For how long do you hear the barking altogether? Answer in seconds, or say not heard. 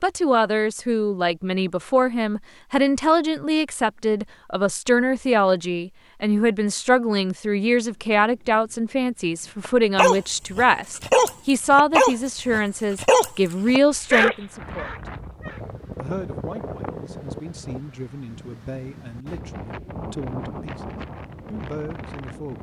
6 s.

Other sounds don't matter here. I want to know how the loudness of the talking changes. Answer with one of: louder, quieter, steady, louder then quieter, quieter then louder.
quieter.